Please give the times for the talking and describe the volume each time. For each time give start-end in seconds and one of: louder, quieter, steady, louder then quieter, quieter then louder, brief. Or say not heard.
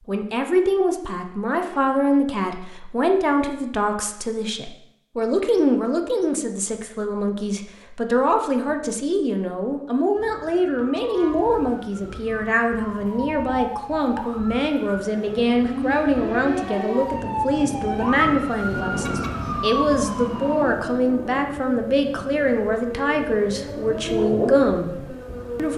0.1-25.7 steady.